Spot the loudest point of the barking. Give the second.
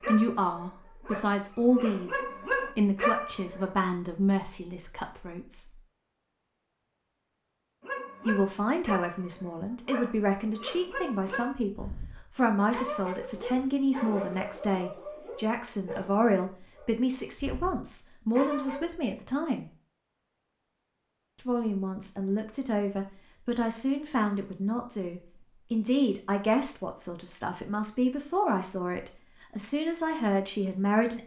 3 s.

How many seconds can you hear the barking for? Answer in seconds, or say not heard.
15 s.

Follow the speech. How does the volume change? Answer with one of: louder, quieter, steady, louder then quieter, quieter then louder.
steady.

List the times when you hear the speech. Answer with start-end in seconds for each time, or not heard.
0.0-5.8, 8.2-19.7, 21.4-31.2.